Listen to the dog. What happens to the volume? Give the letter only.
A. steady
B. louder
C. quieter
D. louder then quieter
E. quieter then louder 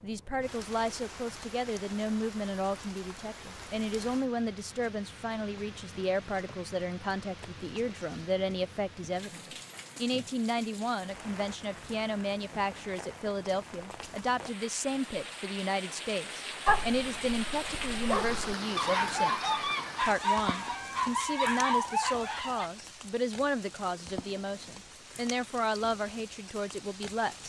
B.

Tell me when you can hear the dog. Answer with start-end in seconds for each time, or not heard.
16.6-22.7.